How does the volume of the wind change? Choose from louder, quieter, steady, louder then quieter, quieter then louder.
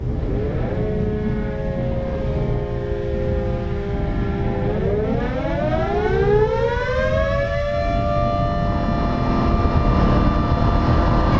steady.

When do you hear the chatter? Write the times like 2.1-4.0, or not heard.
not heard.